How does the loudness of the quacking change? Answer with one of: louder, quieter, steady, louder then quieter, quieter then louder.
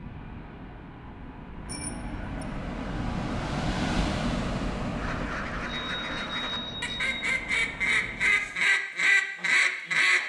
louder.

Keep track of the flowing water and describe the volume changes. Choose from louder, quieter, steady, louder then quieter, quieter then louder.
louder then quieter.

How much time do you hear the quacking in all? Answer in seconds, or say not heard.
5 s.